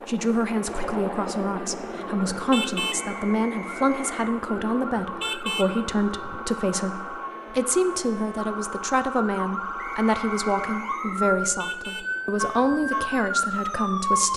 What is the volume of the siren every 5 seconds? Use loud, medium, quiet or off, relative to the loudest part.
medium, medium, loud.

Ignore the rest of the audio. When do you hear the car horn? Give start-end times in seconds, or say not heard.
2.3-3.0, 5.0-6.4, 11.4-12.9.